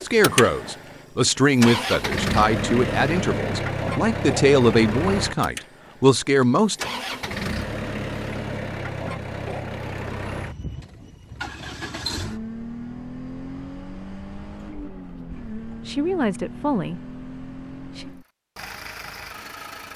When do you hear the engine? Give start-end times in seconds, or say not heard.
0.0-19.9.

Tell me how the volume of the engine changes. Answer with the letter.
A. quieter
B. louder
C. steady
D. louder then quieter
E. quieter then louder
A.